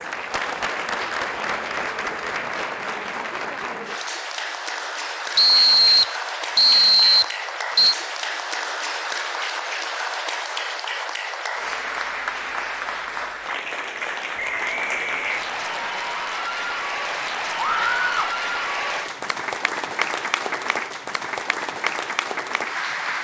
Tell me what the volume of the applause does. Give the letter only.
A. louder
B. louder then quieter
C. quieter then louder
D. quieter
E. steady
E.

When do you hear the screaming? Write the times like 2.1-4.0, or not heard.
17.6-18.4.